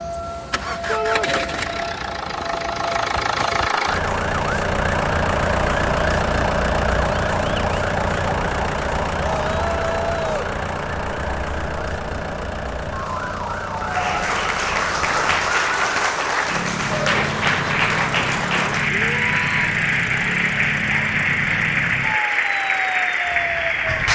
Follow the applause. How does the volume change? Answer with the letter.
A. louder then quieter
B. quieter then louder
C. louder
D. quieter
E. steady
E.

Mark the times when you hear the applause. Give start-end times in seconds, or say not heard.
13.7-24.0.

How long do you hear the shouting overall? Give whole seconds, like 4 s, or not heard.
2 s.